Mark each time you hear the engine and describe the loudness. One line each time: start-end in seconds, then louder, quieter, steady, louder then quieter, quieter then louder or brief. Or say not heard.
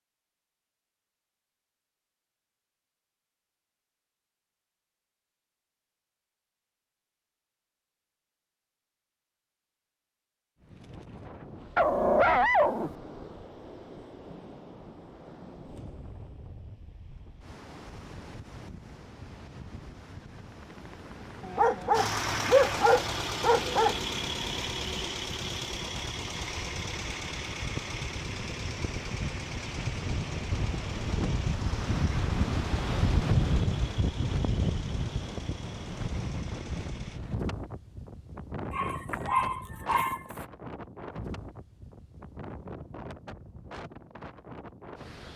21.9-37.2 quieter.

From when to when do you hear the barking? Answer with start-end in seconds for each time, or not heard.
11.8-12.9, 21.4-24.0, 38.7-40.2.